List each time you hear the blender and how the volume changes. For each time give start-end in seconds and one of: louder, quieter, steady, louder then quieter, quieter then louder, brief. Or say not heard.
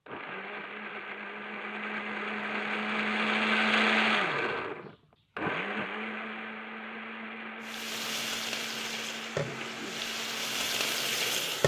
0.1-11.6 louder then quieter.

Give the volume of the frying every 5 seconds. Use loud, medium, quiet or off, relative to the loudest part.
off, medium, loud.